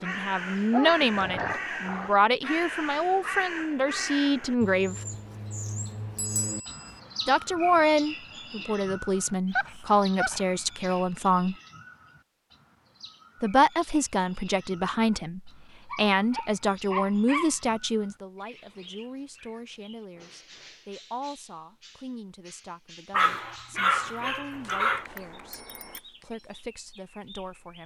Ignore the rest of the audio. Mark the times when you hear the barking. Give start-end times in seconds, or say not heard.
0.7-2.1, 9.4-11.0, 15.9-17.6, 23.1-25.1.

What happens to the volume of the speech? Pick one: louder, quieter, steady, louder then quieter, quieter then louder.
quieter.